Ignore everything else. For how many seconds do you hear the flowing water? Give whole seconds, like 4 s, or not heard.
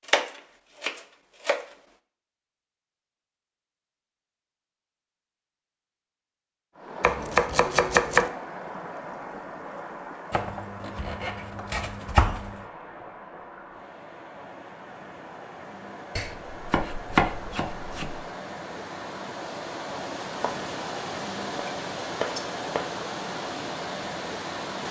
18 s.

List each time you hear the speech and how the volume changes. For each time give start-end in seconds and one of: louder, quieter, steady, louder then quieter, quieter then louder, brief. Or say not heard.
not heard.